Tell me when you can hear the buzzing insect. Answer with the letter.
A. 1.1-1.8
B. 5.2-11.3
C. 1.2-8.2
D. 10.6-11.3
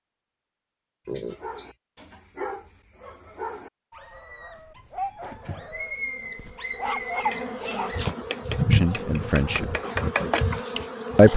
B.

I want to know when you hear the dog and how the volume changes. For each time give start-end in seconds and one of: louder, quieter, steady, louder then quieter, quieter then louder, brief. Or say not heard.
1.2-8.2 louder.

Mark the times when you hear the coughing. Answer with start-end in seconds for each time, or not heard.
1.1-1.8.